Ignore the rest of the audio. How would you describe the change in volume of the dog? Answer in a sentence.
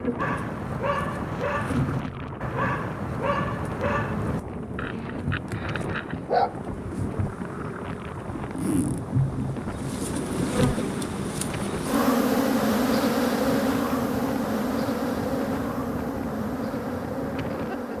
The volume of the dog goes down.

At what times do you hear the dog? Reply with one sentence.
The dog can be heard from 0.1 to 6.7 s.